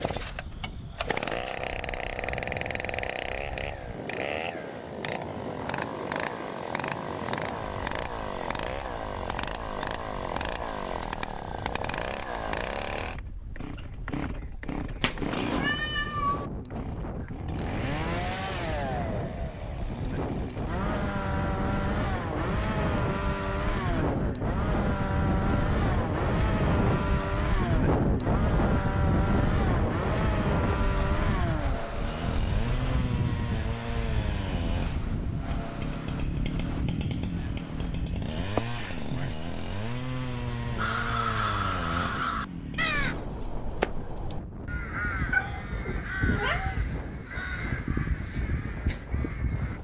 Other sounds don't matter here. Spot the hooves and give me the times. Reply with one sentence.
The hooves can't be heard in this clip.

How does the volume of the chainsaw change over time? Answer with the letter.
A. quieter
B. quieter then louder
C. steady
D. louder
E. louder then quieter
C.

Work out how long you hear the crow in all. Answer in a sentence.
The crow can be heard for 9 seconds in total.